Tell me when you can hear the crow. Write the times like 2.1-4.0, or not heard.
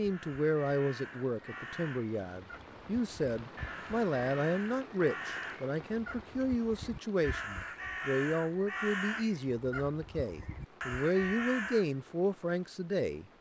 0.0-11.9.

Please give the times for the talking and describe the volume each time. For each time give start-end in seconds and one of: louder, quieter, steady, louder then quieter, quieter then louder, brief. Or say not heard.
0.0-13.2 steady.